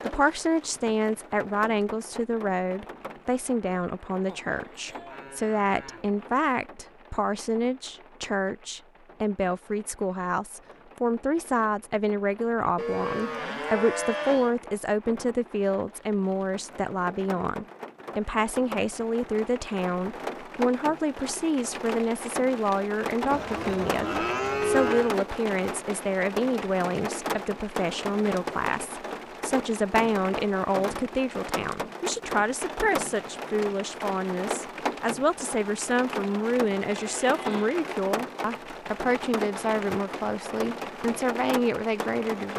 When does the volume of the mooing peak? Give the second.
25 s.